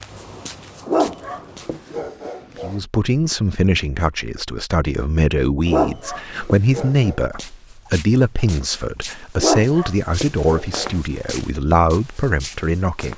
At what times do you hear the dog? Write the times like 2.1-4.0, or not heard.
0.8-2.8, 5.7-7.2, 9.3-10.9.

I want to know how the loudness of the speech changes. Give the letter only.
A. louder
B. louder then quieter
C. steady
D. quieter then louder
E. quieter
C.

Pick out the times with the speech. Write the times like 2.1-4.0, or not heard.
2.6-13.1.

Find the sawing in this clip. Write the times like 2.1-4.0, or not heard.
not heard.